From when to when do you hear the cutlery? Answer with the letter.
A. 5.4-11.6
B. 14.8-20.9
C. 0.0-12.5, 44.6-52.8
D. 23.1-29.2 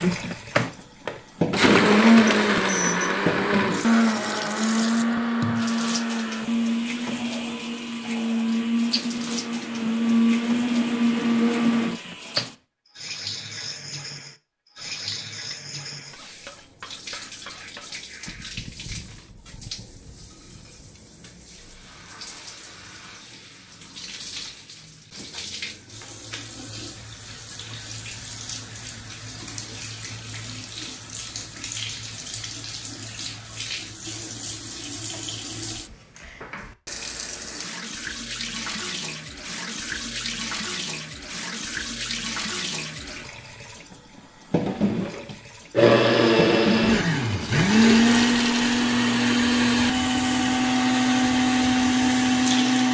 B.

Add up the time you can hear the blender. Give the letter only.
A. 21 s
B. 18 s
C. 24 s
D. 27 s
A.